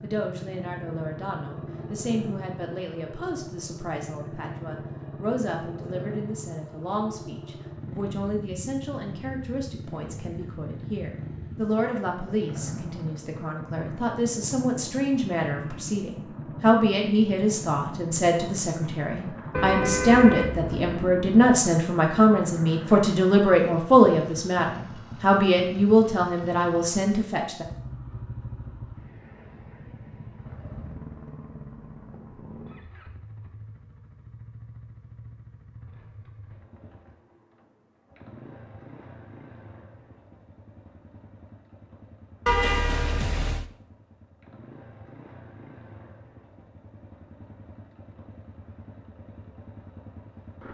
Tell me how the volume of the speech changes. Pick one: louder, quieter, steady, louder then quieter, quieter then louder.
louder.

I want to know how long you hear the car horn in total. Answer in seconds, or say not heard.
3 s.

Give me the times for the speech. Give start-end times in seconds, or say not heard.
0.0-27.6.